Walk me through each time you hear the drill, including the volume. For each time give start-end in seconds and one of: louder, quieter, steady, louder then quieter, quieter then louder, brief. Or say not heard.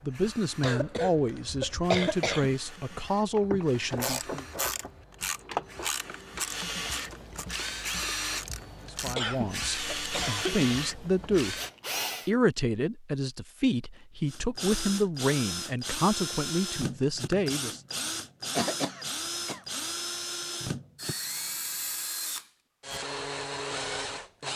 0.0-12.3 louder
14.2-24.5 steady.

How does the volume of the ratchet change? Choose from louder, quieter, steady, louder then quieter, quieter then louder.
quieter.